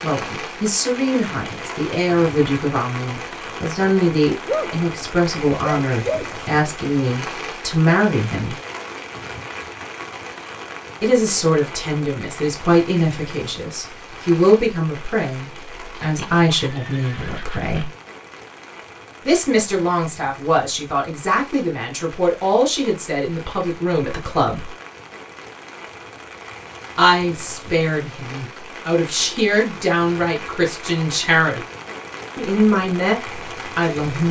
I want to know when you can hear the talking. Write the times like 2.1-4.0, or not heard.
0.0-8.6, 11.0-17.9, 19.2-24.8, 26.9-31.6, 32.4-34.2.